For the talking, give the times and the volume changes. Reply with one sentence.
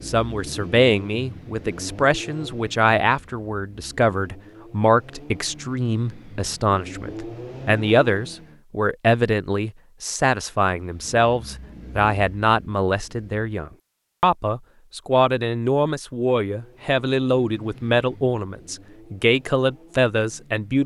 The talking can be heard from 0.0 to 20.8 s, at a steady volume.